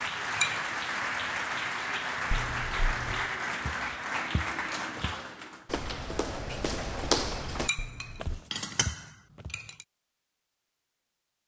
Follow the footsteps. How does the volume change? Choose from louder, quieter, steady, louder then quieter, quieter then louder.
louder then quieter.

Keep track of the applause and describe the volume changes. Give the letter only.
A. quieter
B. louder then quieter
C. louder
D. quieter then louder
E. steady
E.